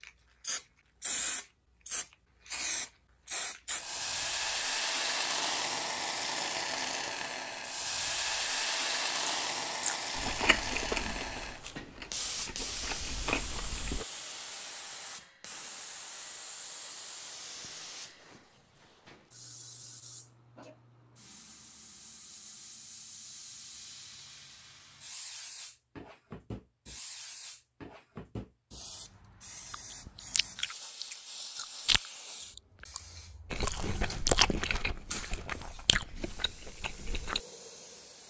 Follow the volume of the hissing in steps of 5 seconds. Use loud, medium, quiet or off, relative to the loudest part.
loud, loud, medium, quiet, quiet, quiet, quiet, quiet.